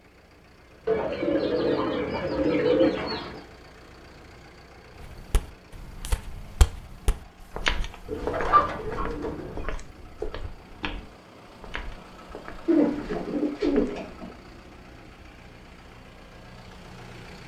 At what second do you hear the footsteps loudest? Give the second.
8 s.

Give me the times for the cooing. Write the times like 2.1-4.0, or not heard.
0.8-3.4, 8.1-9.7, 12.7-14.3.